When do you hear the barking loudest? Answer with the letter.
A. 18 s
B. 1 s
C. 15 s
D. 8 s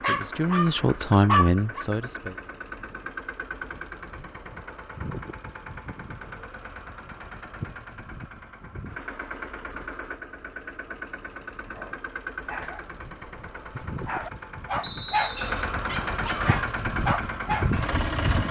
B.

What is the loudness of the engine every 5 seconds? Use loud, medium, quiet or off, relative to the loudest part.
medium, medium, medium, loud.